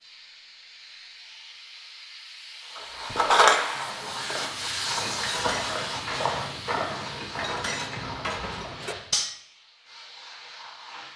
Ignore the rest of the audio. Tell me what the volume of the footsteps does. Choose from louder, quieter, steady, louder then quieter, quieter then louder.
louder then quieter.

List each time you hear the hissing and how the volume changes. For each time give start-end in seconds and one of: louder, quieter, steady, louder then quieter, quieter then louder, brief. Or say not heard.
0.0-11.1 louder then quieter.